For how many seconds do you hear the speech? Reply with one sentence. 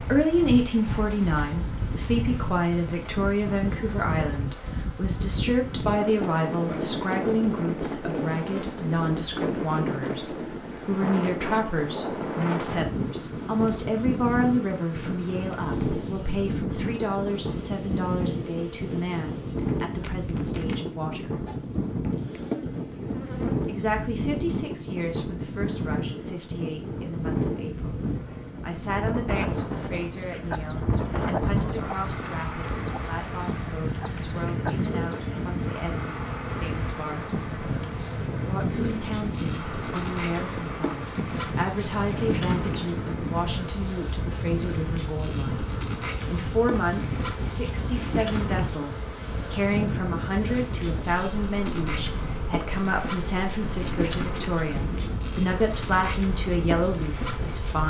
You can hear the speech for 54 seconds altogether.